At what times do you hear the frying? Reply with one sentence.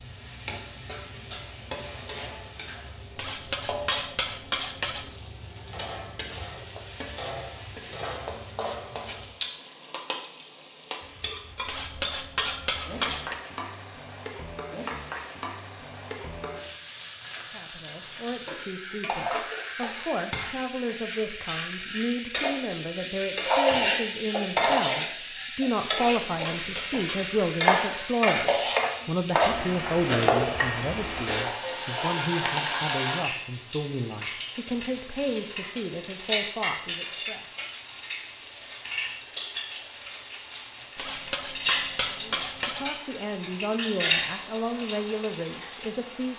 The frying can be heard from 0.0 to 46.3 s.